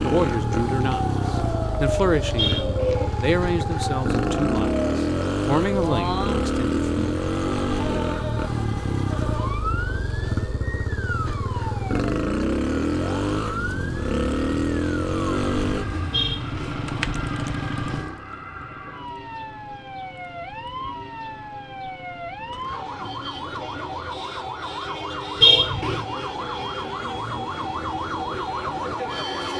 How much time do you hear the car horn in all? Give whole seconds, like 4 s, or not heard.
2 s.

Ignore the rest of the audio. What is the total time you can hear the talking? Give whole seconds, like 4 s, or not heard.
7 s.